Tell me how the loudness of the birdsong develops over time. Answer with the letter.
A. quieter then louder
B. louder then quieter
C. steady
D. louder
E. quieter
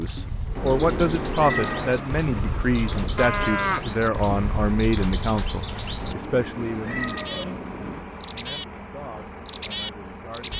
D.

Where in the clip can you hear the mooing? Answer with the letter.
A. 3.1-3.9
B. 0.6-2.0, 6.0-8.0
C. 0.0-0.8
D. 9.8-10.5
A.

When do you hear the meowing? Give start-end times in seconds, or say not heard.
0.6-2.0, 6.0-8.0.